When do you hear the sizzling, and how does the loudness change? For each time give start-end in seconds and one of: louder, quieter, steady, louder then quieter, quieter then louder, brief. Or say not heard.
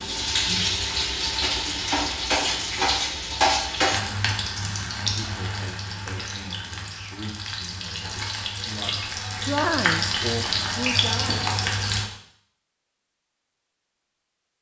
0.0-12.1 quieter then louder.